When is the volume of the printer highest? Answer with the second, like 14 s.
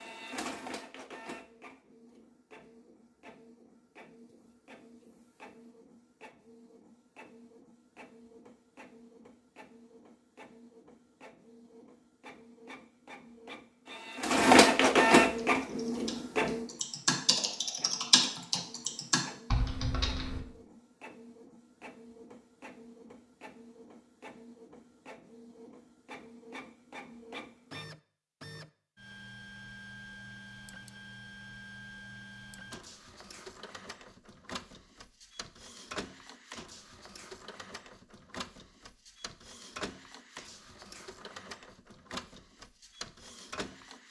15 s.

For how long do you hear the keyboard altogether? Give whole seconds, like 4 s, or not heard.
5 s.